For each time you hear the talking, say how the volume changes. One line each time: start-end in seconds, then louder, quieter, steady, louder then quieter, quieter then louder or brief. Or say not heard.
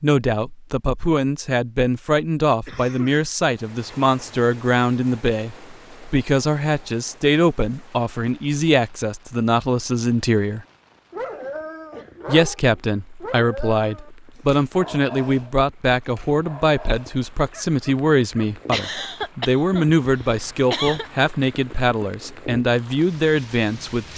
0.0-10.7 steady
12.2-24.1 steady.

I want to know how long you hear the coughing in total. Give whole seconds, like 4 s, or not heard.
4 s.